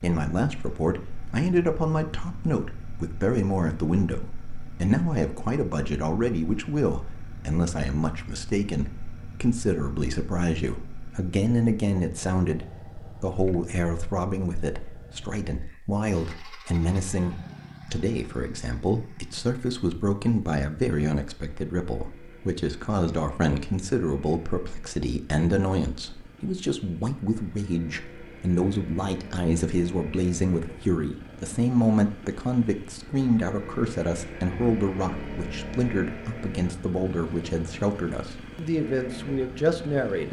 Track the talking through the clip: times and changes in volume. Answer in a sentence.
The talking can be heard from 0.0 to 40.2 s, at a steady volume.